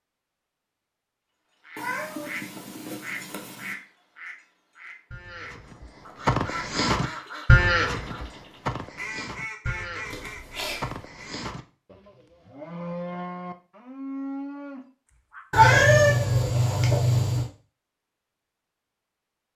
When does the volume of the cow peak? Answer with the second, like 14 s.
8 s.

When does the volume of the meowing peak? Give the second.
16 s.